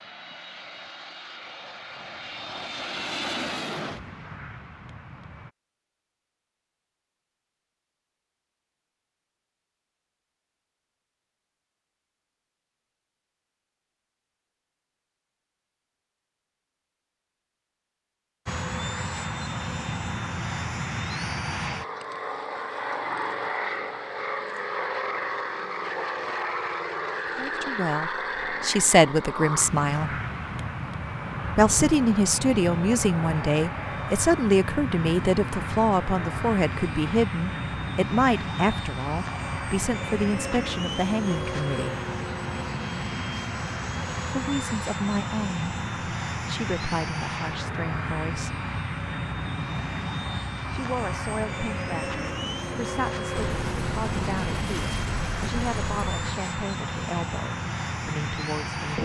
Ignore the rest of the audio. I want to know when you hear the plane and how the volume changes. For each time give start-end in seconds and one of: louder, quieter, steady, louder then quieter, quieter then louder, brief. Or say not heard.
0.0-5.5 louder then quieter
18.4-59.0 steady.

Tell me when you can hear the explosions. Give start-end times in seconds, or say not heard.
53.4-56.4.